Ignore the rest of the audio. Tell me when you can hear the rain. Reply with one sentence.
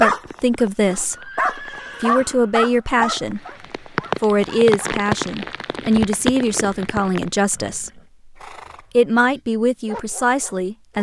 You can hear the rain from 0.0 to 7.4 s.